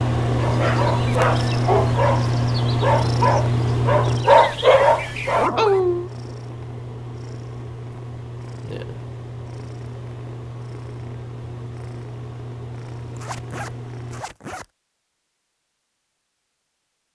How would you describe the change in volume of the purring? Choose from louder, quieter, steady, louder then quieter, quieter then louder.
quieter.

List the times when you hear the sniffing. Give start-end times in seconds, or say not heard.
not heard.